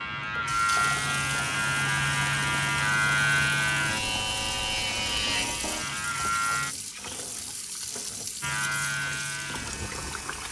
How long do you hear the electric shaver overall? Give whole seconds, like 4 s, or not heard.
9 s.